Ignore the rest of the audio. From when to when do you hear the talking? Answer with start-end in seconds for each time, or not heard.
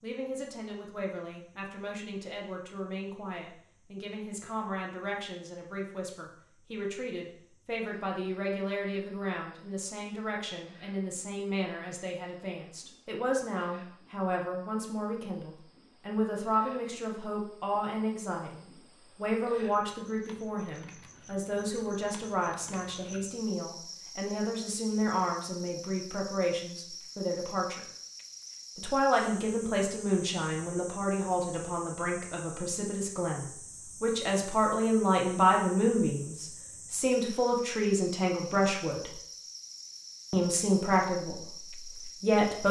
0.0-27.8, 28.8-39.1, 40.3-42.6.